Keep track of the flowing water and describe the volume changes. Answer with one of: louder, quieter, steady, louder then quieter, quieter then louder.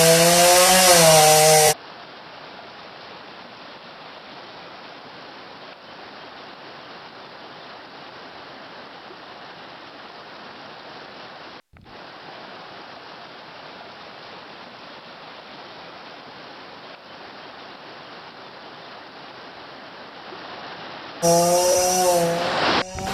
louder.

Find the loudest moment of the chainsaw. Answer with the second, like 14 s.
1 s.